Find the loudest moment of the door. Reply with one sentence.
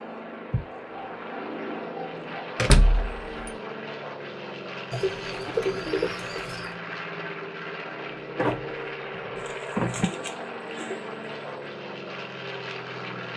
The loudest moment of the door is at 3 seconds.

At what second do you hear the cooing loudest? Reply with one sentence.
The volume of the cooing peaks at 6 seconds.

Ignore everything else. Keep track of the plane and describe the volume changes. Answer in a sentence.
The volume of the plane stays about the same.